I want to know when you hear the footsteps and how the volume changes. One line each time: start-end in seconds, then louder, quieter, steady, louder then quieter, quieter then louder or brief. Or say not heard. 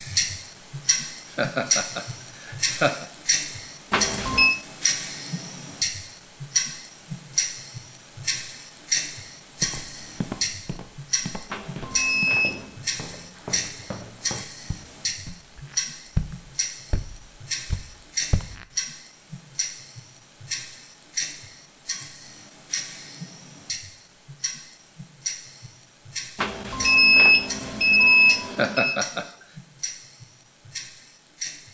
9.6-18.6 louder then quieter.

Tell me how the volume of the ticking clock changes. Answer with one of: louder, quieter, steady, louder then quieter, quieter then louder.
quieter.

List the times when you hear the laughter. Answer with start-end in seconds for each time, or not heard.
1.4-3.0, 28.5-29.3.